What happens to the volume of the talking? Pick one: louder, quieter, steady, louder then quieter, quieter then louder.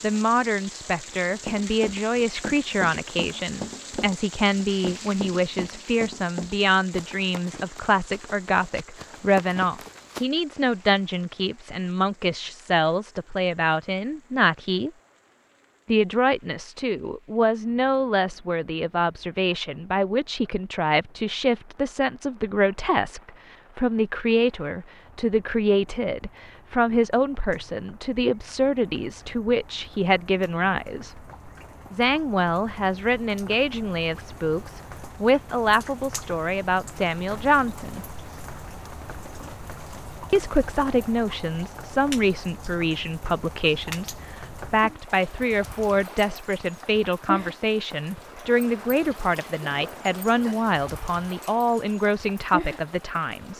steady.